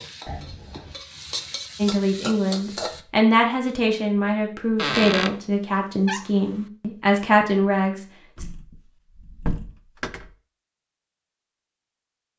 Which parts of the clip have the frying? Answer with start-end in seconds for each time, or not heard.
0.0-3.0.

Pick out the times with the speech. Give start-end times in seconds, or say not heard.
1.8-8.4.